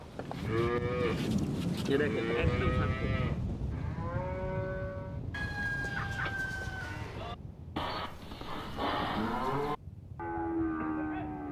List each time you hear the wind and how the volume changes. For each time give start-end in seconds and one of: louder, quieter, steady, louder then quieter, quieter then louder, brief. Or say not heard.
0.0-11.4 quieter.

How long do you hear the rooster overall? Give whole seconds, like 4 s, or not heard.
2 s.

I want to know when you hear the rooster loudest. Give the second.
6 s.